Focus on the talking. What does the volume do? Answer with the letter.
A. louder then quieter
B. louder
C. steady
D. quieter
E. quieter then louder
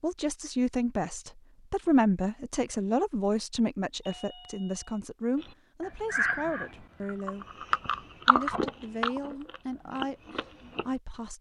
D.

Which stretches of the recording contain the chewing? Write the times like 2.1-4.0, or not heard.
5.4-10.8.